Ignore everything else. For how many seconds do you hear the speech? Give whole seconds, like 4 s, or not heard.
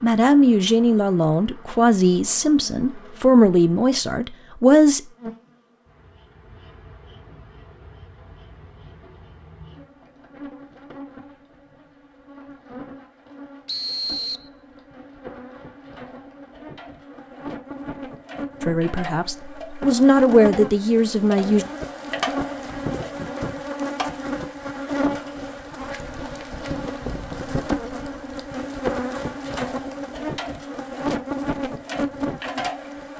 8 s.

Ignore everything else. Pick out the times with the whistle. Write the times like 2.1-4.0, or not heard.
13.7-14.5.